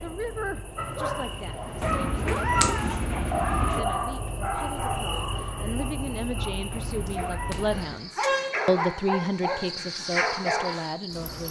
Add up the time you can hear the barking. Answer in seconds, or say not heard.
10 s.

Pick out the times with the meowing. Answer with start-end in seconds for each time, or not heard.
1.8-3.8, 6.7-8.0.